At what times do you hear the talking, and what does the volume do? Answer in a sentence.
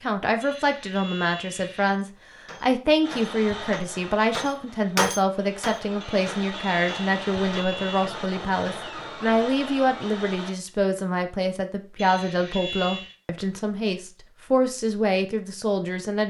You can hear the talking from 0.0 to 16.2 s, at a steady volume.